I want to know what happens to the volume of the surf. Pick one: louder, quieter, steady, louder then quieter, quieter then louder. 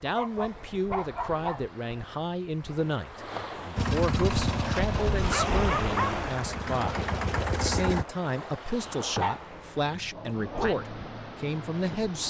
louder then quieter.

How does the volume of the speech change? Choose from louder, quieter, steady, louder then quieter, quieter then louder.
steady.